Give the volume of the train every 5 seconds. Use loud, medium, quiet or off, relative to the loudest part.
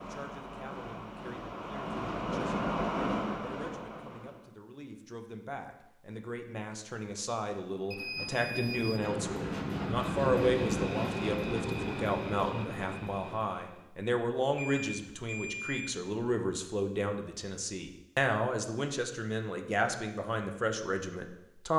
loud, loud, loud, off, off.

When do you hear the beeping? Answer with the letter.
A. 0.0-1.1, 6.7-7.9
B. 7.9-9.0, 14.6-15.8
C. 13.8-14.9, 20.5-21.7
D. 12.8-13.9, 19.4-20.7
B.